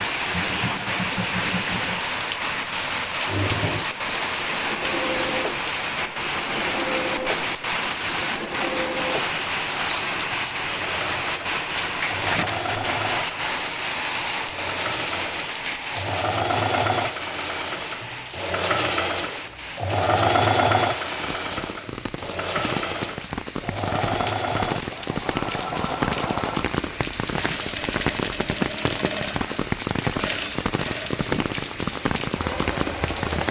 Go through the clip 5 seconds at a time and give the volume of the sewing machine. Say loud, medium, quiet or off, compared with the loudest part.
medium, medium, medium, loud, loud, medium, medium.